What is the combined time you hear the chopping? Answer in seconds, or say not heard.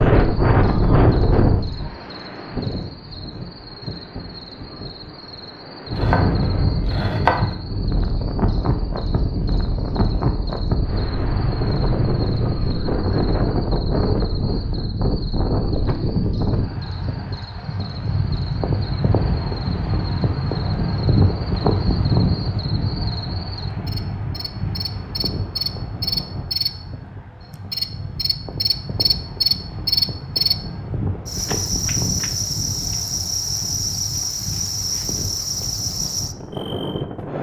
2 s.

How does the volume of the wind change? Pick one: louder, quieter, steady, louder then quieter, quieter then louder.
quieter.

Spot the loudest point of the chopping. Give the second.
7 s.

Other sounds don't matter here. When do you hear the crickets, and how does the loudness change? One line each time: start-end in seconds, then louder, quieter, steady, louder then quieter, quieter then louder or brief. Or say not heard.
0.0-37.2 louder.